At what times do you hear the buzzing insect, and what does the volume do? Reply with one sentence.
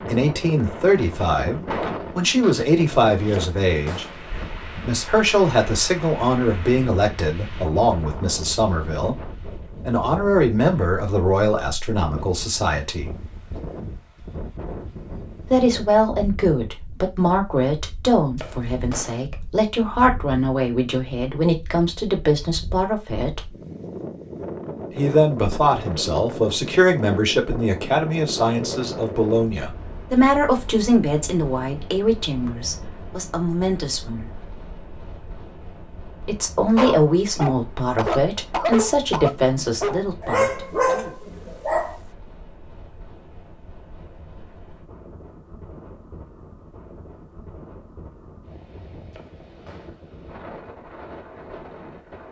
You can't hear the buzzing insect here.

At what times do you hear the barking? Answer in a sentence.
You can hear the barking from 36.8 to 42.0 s.